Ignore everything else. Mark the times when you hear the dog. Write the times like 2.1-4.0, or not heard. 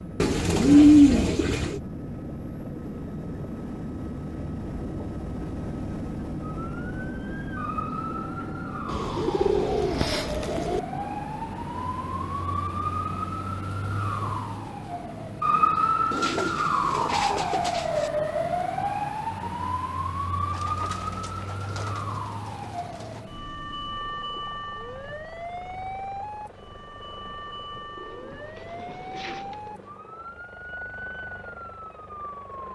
not heard.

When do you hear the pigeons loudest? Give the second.
1 s.